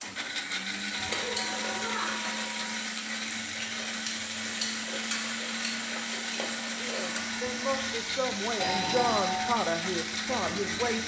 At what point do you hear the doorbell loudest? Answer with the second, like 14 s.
9 s.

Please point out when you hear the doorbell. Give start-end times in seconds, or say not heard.
0.9-2.9, 8.6-9.6.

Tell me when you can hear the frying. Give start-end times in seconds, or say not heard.
0.0-11.0.